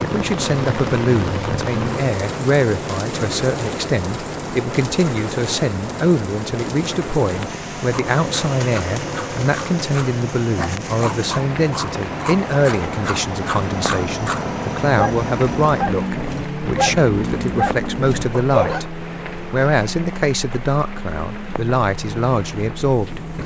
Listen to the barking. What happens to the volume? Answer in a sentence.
The loudness of the barking goes up.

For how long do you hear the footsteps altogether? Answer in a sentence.
The footsteps can't be heard in this clip.